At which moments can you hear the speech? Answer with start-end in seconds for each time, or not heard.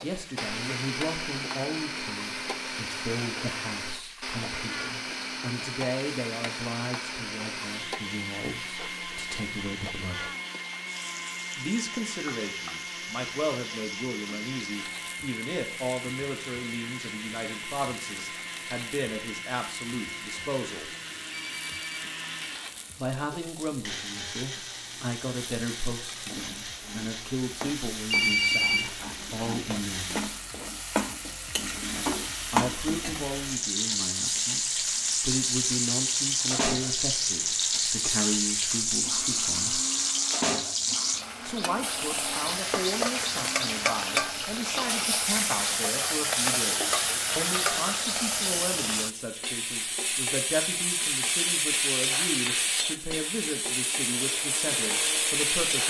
0.0-10.3, 11.6-20.9, 22.9-30.2, 32.5-39.8, 41.4-55.8.